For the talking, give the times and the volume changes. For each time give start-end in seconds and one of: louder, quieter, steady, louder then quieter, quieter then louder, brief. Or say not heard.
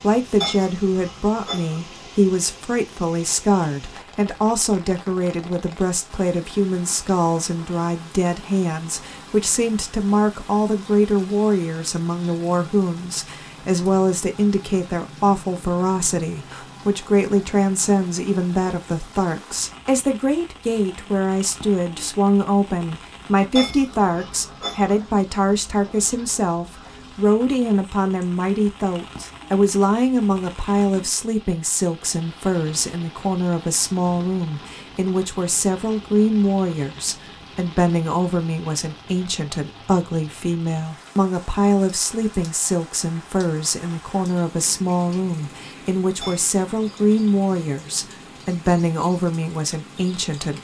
0.0-50.5 steady.